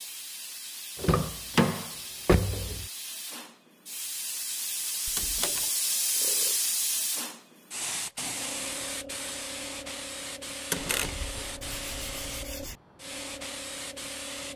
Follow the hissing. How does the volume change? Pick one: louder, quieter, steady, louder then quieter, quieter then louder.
louder then quieter.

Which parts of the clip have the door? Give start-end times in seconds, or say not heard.
0.9-2.9, 5.0-5.7, 10.7-11.4.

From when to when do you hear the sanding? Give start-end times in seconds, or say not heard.
10.8-12.8.